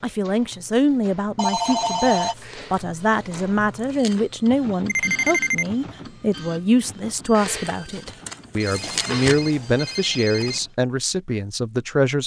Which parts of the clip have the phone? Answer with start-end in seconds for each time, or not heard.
1.4-2.4, 4.8-5.7, 8.6-10.6.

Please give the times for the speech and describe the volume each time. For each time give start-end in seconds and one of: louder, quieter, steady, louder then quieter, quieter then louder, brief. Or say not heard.
0.0-12.2 steady.